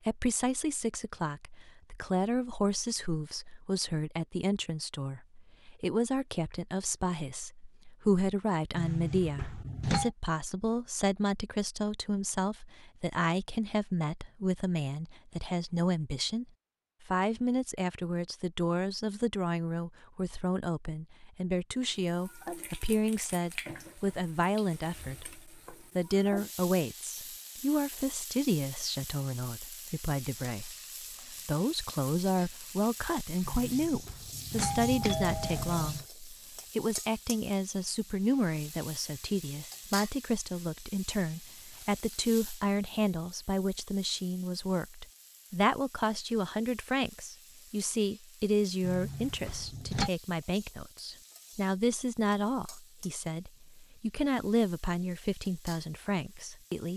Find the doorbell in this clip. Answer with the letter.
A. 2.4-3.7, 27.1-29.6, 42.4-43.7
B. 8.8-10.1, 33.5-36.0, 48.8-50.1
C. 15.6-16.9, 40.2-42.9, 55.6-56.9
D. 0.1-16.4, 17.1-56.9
B.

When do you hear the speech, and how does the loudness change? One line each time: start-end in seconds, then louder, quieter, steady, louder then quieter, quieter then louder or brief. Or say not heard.
0.1-16.4 steady
17.1-56.9 steady.